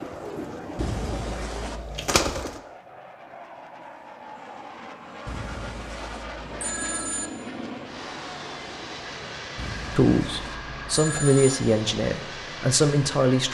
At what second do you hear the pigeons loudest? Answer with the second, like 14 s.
2 s.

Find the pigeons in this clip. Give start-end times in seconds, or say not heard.
0.0-2.6.